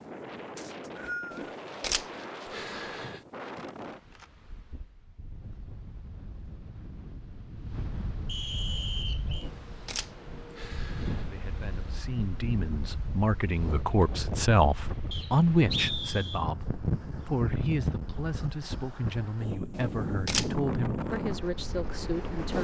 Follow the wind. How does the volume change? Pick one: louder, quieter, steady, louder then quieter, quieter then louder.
louder.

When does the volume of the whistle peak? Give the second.
16 s.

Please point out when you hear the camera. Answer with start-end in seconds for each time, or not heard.
1.3-3.2, 9.3-11.2, 19.8-20.5.